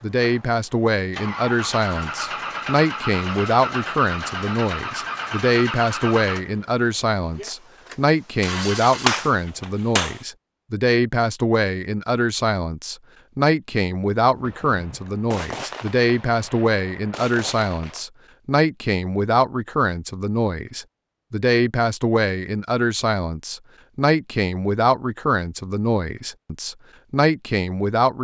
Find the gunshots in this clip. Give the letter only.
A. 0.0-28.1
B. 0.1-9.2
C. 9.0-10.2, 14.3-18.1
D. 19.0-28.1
C.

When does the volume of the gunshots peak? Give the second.
9 s.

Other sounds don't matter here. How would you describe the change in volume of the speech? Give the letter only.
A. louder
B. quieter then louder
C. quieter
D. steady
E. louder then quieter
D.